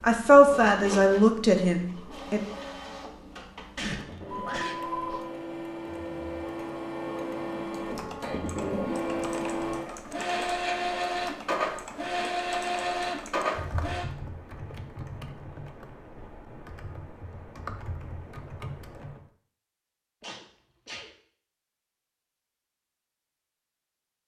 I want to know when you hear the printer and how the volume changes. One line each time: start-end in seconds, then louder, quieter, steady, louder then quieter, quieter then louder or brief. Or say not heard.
0.0-14.1 louder.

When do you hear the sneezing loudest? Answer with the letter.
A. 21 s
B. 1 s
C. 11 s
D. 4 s
D.